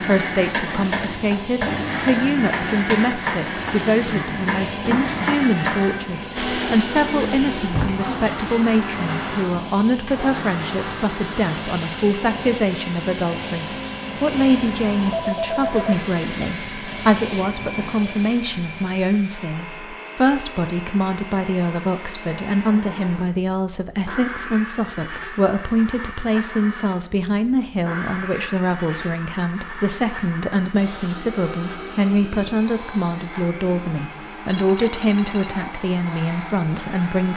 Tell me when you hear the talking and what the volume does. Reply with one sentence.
You can hear the talking from 0.0 to 37.3 s, at a steady volume.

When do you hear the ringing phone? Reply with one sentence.
You can hear the ringing phone from 15.1 to 16.0 s and from 34.5 to 35.5 s.